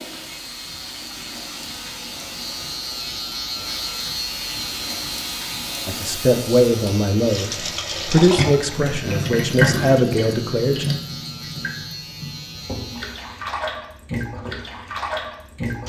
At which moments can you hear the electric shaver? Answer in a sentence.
You can hear the electric shaver from 0.0 to 13.5 s.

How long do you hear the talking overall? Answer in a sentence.
You can hear the talking for 5 seconds altogether.